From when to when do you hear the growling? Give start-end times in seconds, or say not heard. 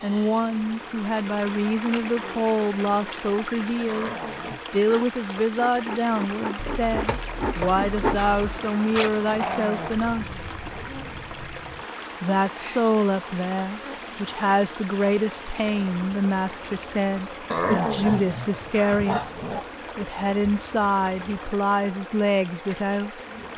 3.9-4.6, 8.9-9.9, 17.5-19.6.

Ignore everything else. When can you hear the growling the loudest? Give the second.
18 s.